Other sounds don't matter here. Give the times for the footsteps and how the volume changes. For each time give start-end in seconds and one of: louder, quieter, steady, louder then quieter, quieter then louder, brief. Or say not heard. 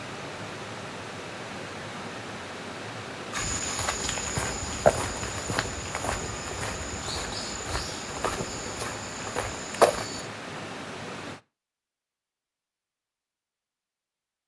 3.3-10.2 quieter then louder.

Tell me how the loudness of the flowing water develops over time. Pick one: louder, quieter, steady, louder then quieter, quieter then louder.
steady.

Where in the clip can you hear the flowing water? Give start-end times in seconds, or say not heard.
0.0-11.4.